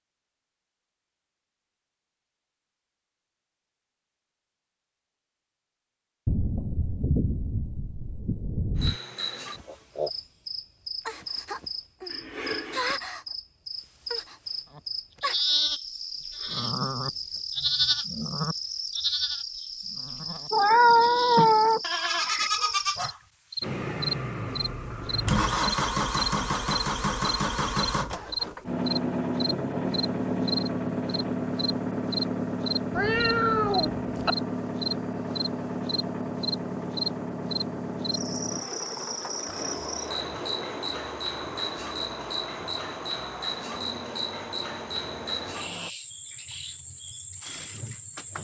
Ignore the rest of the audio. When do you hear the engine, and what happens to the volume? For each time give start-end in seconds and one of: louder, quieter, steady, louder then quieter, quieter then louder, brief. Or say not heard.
23.6-45.9 quieter.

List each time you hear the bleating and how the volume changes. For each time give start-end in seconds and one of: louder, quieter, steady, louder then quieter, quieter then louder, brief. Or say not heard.
14.8-23.2 quieter then louder.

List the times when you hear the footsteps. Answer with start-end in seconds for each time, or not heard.
not heard.